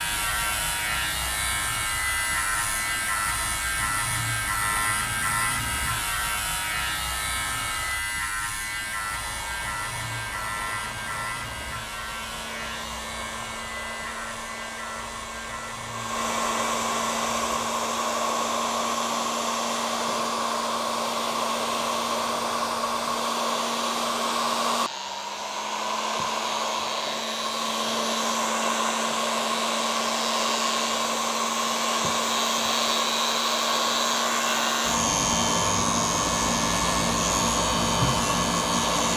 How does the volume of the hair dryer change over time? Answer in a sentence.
The loudness of the hair dryer goes up.